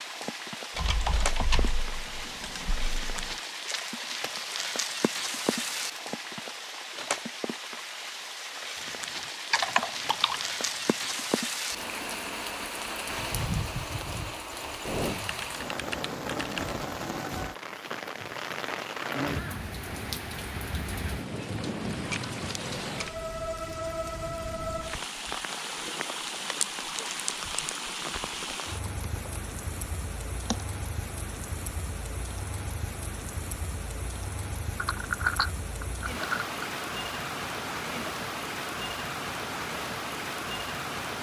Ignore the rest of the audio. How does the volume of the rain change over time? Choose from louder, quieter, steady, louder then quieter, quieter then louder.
steady.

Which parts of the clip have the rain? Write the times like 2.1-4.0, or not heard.
0.0-41.1.